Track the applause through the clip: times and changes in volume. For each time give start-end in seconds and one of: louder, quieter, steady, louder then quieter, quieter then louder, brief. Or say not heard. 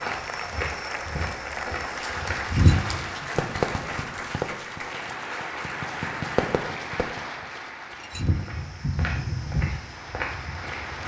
0.0-11.0 quieter.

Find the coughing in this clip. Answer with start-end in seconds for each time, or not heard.
not heard.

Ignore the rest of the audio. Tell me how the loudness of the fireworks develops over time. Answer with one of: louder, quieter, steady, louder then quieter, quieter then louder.
quieter then louder.